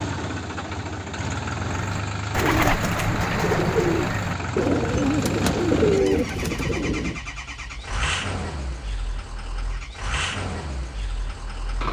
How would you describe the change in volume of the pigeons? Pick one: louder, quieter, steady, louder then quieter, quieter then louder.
steady.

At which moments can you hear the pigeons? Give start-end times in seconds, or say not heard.
1.6-7.2.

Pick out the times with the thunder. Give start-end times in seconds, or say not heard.
4.7-7.2.